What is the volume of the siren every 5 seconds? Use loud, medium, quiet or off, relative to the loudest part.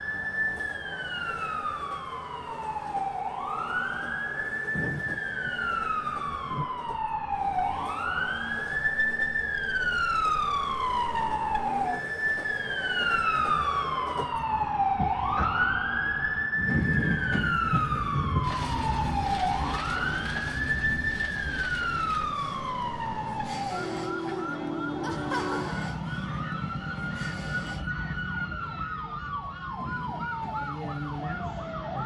medium, loud, loud, loud, loud, medium, medium.